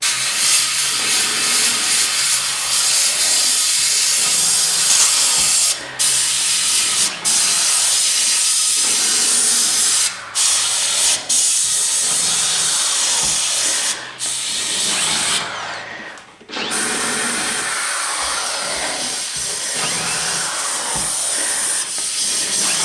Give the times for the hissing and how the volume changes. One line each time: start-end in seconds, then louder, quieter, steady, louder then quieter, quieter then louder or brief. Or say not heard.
0.0-22.8 quieter.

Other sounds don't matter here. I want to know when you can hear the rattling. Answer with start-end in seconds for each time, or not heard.
4.8-5.2.